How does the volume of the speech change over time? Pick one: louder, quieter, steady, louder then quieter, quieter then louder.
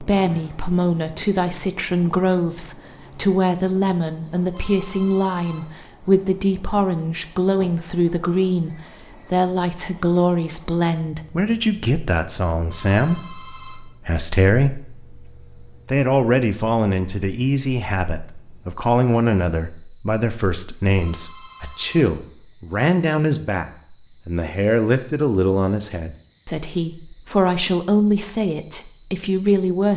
steady.